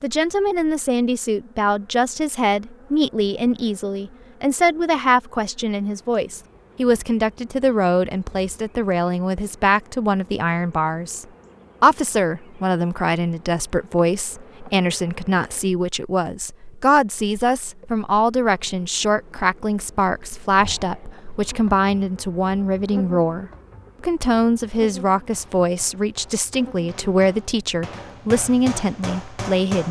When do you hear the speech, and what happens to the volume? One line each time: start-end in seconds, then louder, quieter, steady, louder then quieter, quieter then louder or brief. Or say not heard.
0.0-29.8 steady.